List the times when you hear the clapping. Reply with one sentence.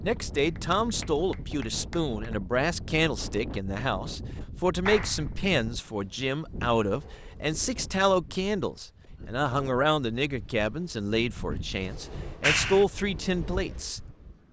The clapping can be heard from 0.5 to 2.4 s, from 4.8 to 5.3 s and from 12.4 to 12.8 s.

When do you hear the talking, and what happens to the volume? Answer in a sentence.
The talking can be heard from 0.0 to 14.0 s, at a steady volume.